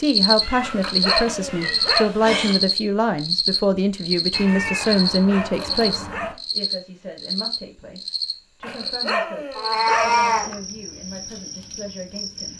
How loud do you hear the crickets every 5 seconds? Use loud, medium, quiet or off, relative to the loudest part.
loud, medium, quiet.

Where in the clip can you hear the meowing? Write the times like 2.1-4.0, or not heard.
0.4-2.5, 4.3-6.3, 9.6-10.5.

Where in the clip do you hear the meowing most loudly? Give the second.
10 s.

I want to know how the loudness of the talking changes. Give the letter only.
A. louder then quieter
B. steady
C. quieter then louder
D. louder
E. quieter
E.